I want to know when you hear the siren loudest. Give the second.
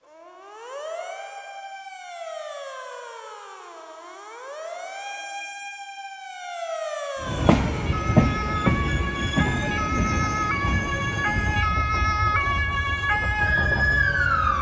14 s.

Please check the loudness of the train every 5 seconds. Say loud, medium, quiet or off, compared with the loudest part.
off, loud, medium.